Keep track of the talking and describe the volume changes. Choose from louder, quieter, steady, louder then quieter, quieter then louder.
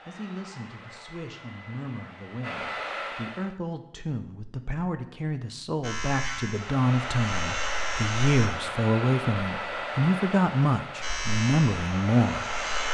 louder.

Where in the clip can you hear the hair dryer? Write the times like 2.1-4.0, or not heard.
0.0-3.5, 6.5-12.9.